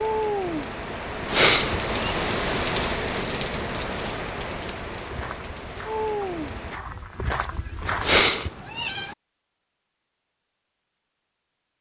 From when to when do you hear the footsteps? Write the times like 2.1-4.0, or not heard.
5.0-8.2.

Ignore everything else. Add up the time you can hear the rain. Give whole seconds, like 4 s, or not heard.
7 s.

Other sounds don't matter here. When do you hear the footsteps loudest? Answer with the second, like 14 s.
8 s.